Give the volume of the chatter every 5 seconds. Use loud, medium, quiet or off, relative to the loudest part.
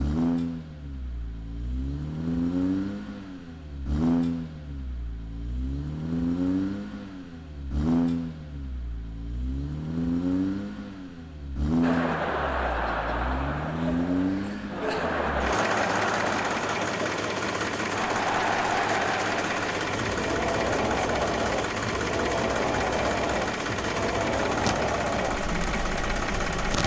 off, off, loud, loud, loud, medium.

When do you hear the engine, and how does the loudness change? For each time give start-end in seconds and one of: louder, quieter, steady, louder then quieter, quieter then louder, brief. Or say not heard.
0.0-26.8 steady.